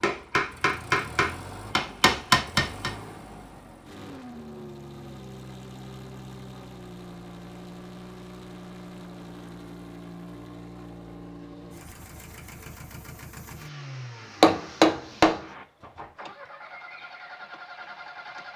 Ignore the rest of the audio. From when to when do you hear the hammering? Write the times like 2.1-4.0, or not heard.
0.0-2.9, 14.4-16.1.